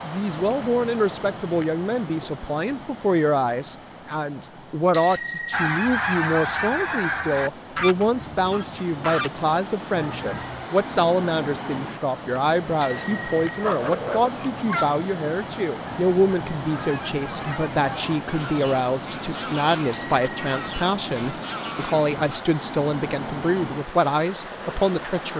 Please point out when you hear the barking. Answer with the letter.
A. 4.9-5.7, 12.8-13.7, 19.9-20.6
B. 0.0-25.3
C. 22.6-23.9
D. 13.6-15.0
D.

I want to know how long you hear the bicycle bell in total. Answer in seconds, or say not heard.
2 s.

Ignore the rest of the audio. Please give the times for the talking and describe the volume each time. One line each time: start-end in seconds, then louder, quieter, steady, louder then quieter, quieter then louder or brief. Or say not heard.
0.0-25.3 steady.